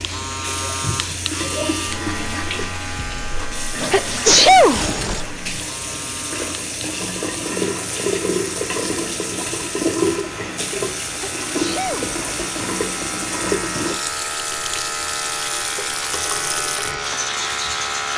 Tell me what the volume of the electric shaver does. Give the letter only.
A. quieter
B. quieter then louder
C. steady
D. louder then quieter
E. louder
B.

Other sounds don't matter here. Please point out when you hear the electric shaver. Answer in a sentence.
You can hear the electric shaver from 0.0 to 18.1 s.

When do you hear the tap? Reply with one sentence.
The tap can be heard from 0.0 to 18.1 s.